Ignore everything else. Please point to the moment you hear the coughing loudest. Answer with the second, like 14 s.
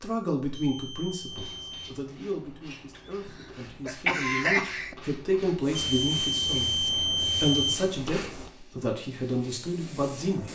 4 s.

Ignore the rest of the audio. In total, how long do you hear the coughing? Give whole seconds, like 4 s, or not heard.
2 s.